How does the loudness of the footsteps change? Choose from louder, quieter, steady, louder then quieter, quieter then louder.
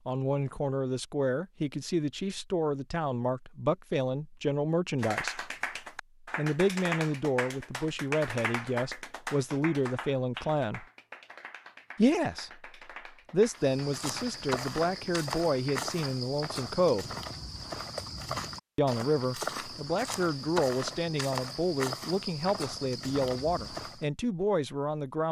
steady.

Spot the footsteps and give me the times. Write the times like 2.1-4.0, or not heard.
13.5-24.1.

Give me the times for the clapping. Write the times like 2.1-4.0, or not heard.
5.0-16.2.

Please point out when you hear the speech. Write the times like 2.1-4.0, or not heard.
0.1-5.5, 6.3-10.8, 11.9-12.6, 13.3-17.1, 18.8-25.2.